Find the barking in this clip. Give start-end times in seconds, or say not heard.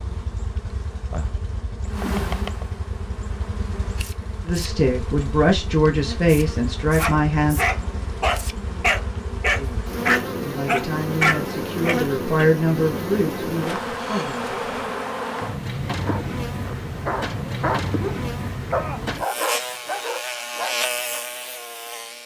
7.0-12.4, 15.9-21.2.